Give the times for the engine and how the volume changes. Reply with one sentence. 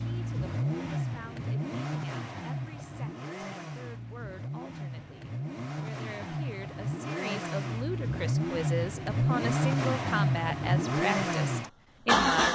You can hear the engine from 0.0 to 12.4 s, getting quieter then louder.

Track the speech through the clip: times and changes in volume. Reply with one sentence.
The speech can be heard from 0.0 to 12.4 s, getting louder.